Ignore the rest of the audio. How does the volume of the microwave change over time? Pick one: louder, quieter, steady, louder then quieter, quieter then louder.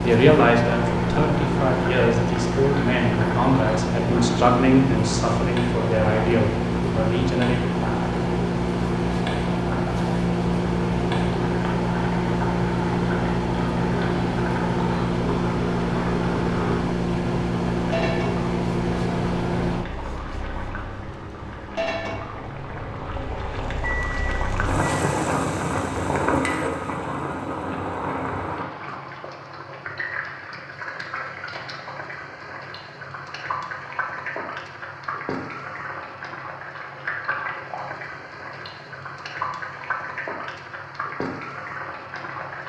quieter.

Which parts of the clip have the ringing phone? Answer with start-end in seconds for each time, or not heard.
not heard.